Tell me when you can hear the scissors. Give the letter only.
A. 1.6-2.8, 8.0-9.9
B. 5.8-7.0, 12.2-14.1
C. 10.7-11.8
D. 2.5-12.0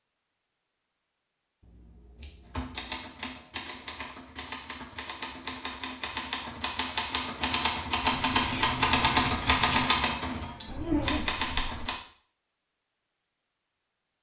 A.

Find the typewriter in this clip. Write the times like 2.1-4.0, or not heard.
2.5-12.0.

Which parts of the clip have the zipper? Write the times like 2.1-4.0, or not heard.
10.7-11.8.